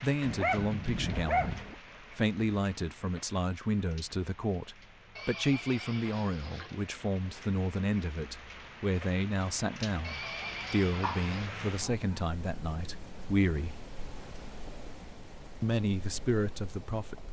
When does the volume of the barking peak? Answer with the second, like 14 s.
1 s.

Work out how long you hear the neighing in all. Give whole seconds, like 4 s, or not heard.
3 s.